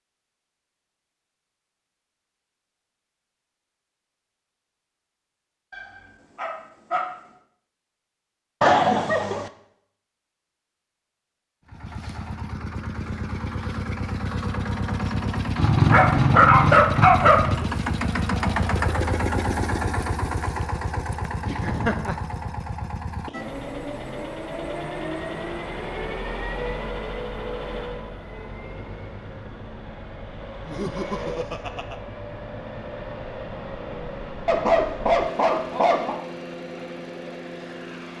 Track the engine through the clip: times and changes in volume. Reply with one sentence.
You can hear the engine from 11.7 to 38.1 s, getting quieter.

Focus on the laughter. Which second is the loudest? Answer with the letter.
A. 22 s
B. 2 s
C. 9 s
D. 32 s
C.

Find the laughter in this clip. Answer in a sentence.
The laughter can be heard from 8.6 to 9.5 s, from 21.4 to 22.2 s and from 30.6 to 32.0 s.